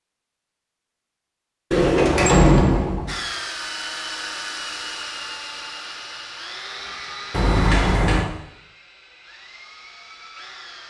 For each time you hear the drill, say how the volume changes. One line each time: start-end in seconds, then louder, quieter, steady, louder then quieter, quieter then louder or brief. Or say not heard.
3.0-10.8 quieter.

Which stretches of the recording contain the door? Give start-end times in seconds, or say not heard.
1.7-3.1, 7.3-8.2.